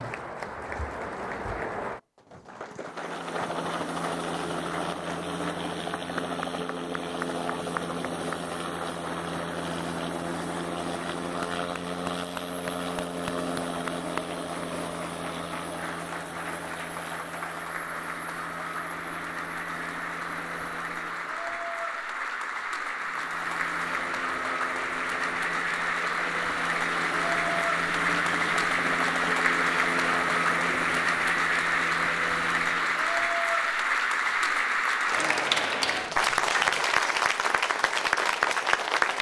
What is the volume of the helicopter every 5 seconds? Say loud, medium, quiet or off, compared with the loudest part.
loud, loud, loud, medium, medium, loud, loud, off.